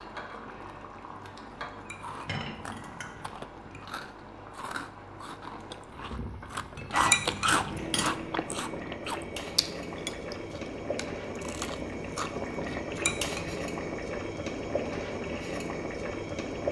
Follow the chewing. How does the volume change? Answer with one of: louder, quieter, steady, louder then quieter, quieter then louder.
louder then quieter.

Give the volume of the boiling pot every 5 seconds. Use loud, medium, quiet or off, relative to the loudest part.
medium, medium, loud, loud.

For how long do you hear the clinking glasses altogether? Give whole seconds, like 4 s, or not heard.
4 s.